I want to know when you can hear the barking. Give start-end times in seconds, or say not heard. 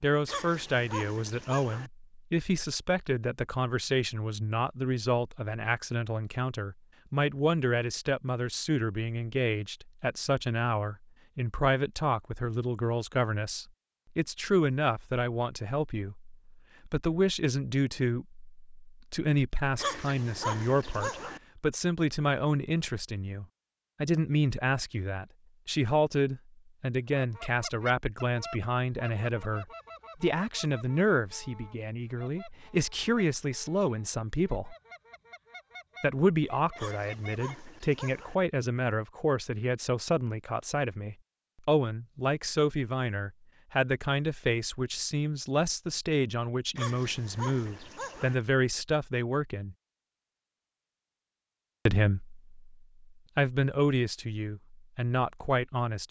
0.2-1.9, 19.8-21.4, 36.8-38.4, 46.8-48.4.